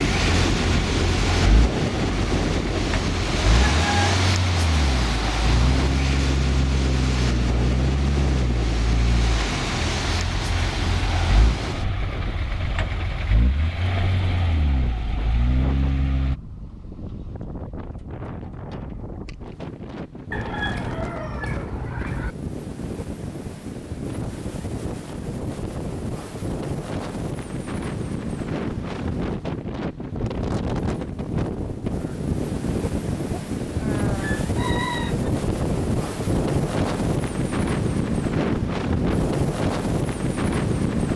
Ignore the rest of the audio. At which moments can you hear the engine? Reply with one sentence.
You can hear the engine from 0.0 to 16.4 s.